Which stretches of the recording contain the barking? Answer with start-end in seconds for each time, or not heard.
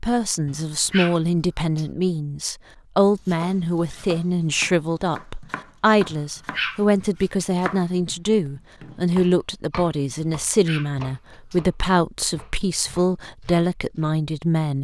0.5-1.9, 6.1-7.5, 10.2-11.6.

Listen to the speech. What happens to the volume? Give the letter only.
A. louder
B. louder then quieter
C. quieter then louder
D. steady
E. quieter
D.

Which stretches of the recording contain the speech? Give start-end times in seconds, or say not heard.
0.0-14.7.